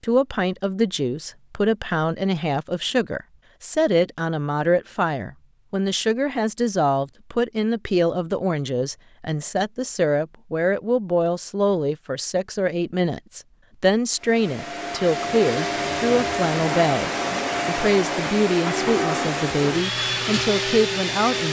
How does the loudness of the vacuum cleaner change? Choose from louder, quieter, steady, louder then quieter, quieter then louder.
steady.